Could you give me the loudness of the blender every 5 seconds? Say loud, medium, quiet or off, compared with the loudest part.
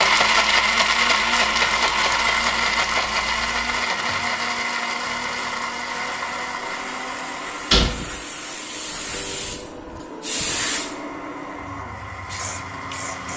loud, medium, quiet.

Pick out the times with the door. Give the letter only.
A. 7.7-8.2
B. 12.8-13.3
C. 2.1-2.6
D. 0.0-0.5
A.